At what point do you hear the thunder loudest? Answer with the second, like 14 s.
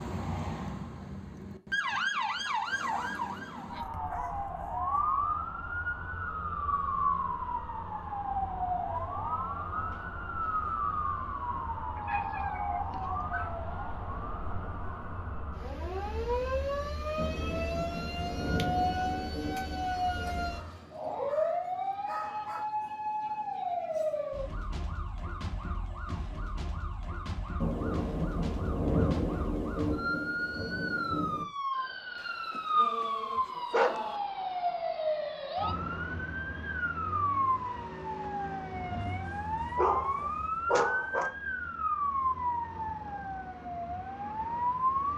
29 s.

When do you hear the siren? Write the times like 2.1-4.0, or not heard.
0.0-45.1.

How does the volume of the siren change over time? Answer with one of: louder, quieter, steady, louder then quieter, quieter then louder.
steady.